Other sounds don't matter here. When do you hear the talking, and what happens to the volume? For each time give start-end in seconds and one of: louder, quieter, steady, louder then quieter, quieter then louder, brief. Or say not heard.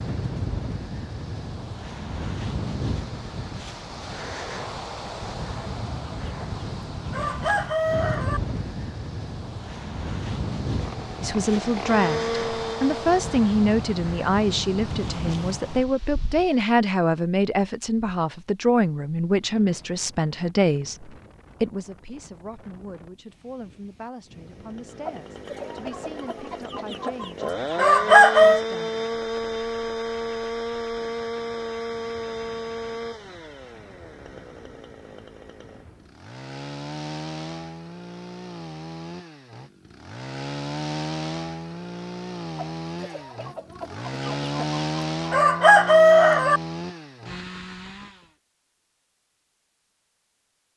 11.2-28.9 quieter.